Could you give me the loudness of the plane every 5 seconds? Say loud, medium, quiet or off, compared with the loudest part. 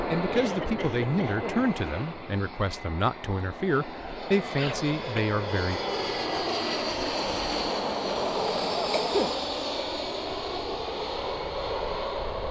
medium, loud, loud.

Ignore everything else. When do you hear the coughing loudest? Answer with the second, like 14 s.
9 s.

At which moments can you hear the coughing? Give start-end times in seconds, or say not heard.
0.3-1.6, 4.5-5.2, 8.8-9.3.